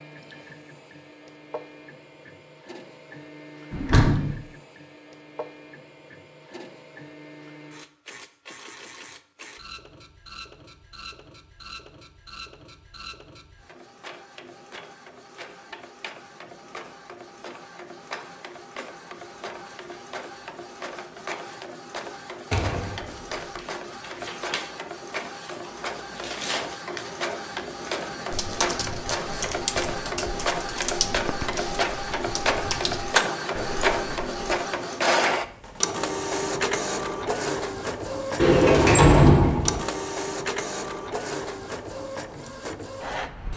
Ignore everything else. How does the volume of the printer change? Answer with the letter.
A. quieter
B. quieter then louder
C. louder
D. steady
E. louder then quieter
C.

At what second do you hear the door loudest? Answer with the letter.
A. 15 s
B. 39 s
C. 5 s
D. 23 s
B.